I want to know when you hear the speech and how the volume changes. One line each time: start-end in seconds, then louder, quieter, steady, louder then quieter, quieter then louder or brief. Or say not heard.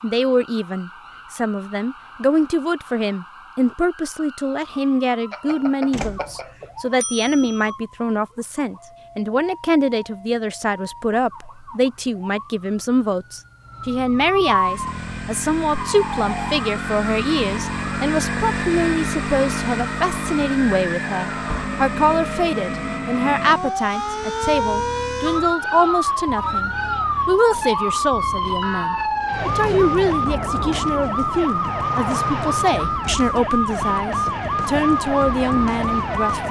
0.0-36.4 steady.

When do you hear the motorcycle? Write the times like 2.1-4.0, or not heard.
14.4-28.8.